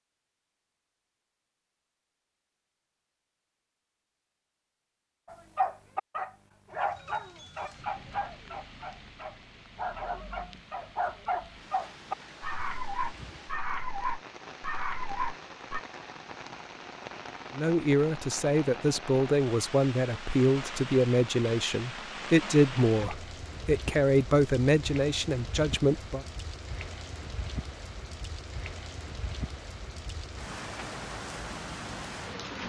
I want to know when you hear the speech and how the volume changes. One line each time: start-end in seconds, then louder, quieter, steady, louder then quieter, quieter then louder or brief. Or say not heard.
17.6-26.2 steady.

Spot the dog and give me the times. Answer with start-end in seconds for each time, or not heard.
5.3-15.8.